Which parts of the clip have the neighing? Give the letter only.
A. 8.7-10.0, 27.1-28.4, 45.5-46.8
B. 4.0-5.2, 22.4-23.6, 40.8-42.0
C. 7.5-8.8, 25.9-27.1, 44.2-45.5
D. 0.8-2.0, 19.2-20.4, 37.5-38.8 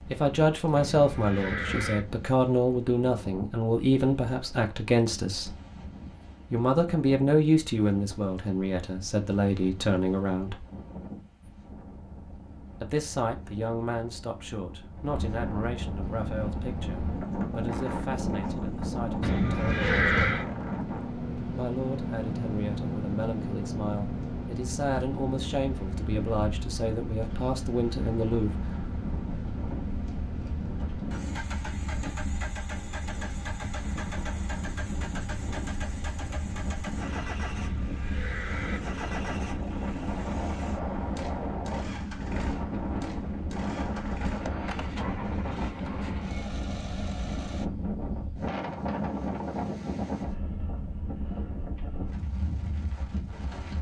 D.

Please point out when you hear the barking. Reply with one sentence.
The barking can't be heard in this clip.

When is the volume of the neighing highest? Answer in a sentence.
The loudest moment of the neighing is at 20 seconds.